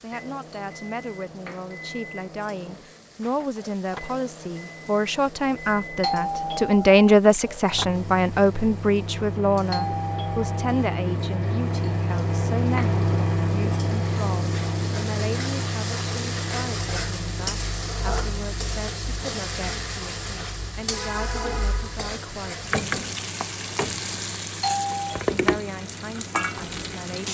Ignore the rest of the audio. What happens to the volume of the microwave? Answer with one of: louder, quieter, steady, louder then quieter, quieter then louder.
louder then quieter.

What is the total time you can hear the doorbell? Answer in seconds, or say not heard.
3 s.